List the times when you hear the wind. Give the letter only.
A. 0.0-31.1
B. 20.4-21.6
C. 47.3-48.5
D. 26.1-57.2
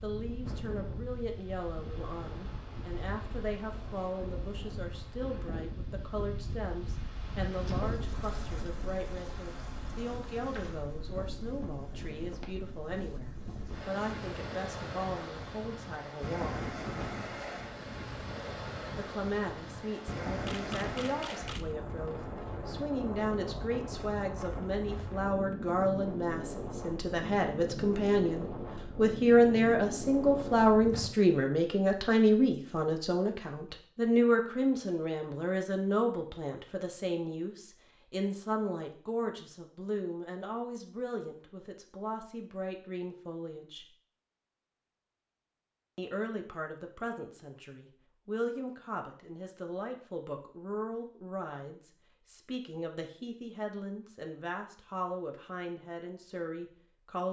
A.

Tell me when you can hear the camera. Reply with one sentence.
You can hear the camera from 20.4 to 21.6 s.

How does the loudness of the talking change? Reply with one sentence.
The volume of the talking goes up, then down.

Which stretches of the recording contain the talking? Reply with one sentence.
You can hear the talking from 0.0 to 16.7 s, from 18.9 to 43.9 s and from 46.0 to 57.2 s.